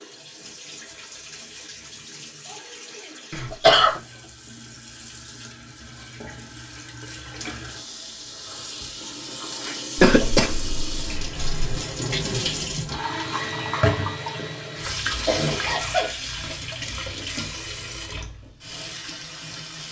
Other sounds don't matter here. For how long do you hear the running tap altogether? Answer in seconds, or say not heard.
20 s.